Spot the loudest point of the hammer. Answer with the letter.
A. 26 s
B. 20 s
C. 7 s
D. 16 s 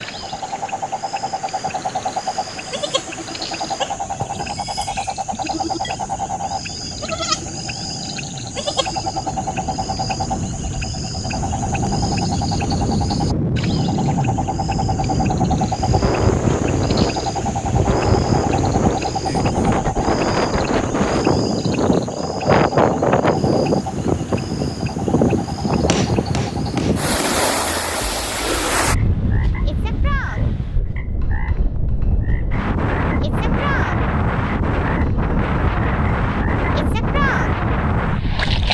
A.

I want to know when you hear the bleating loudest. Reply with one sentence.
The loudest moment of the bleating is at 7 seconds.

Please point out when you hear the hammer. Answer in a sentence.
You can hear the hammer from 25.7 to 27.4 s.